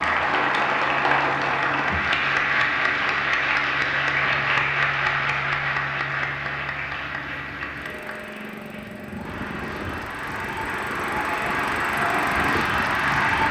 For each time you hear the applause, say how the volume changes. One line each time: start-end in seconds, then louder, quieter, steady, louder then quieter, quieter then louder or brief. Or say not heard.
0.0-13.4 quieter then louder.